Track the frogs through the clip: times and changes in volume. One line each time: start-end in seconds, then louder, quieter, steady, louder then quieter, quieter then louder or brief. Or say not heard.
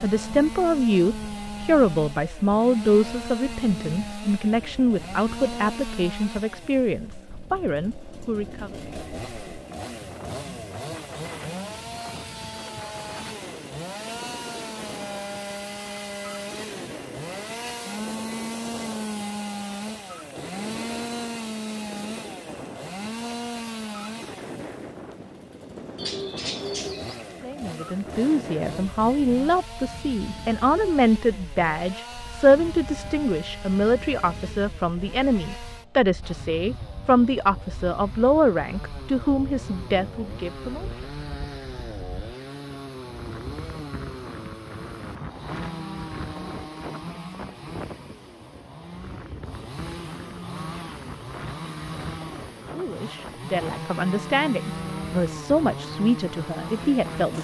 not heard.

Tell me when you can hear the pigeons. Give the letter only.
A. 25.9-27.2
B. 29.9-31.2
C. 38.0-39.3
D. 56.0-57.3
A.